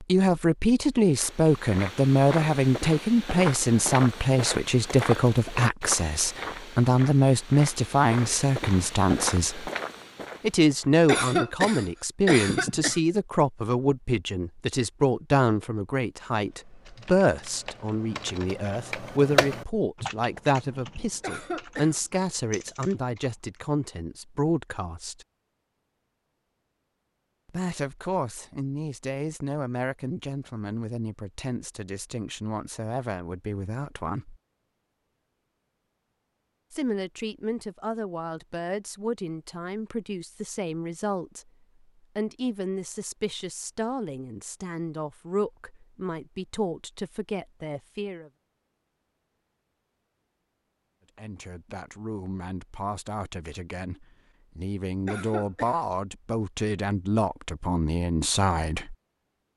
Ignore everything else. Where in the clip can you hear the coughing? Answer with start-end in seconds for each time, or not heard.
11.1-13.0, 21.2-21.9, 55.0-55.9.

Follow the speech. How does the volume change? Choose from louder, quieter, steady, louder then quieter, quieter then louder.
quieter.